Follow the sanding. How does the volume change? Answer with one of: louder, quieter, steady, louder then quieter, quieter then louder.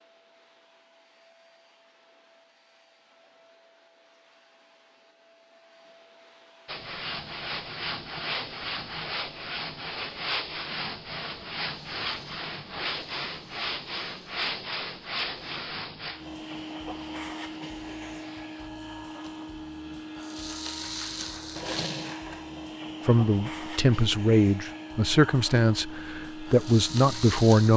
quieter.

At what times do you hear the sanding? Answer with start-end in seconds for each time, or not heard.
6.7-18.7.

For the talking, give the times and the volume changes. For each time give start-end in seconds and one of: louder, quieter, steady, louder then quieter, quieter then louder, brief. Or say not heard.
23.1-27.7 quieter then louder.